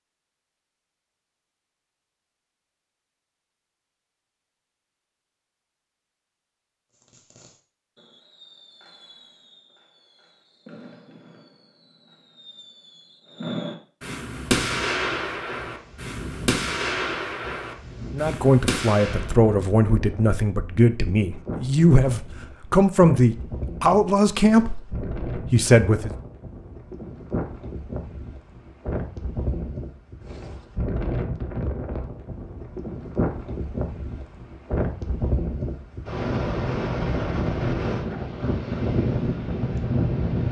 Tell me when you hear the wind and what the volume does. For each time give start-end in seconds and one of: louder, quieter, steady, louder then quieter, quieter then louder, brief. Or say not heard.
14.2-40.4 louder.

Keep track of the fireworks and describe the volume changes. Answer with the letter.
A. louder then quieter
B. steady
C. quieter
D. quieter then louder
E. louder
E.